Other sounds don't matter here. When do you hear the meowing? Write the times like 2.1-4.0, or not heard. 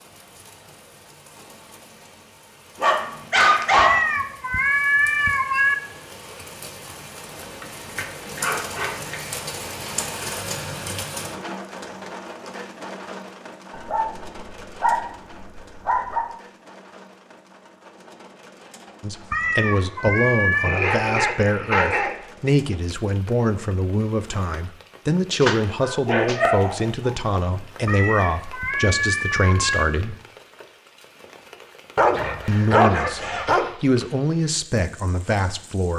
3.8-5.8, 19.3-20.8, 27.9-29.9.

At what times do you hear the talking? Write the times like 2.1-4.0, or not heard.
19.0-30.1, 32.5-35.9.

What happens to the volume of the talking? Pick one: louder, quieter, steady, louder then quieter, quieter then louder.
steady.